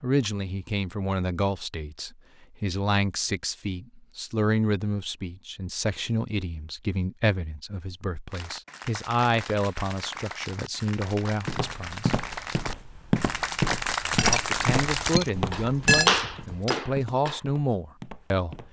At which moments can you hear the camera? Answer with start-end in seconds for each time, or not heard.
not heard.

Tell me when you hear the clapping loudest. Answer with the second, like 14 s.
16 s.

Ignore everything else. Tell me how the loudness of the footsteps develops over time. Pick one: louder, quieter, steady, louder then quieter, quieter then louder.
louder then quieter.